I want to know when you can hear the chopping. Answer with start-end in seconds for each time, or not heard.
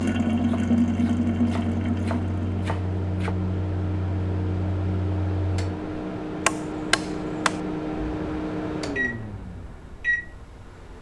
0.5-3.4, 6.5-7.6.